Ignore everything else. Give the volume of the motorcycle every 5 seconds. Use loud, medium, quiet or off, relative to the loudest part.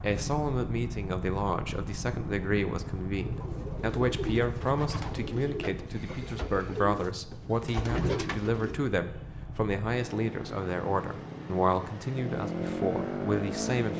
loud, medium, loud.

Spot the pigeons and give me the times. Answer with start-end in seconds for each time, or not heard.
3.1-8.9.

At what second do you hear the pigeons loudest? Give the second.
8 s.